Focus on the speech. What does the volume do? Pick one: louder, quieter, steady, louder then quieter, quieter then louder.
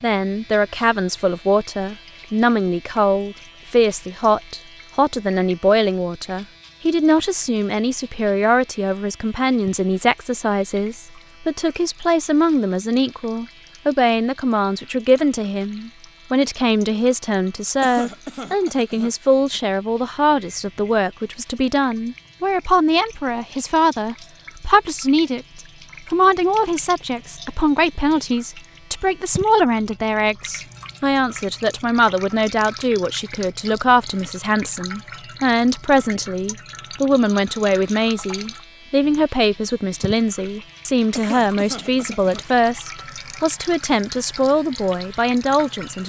steady.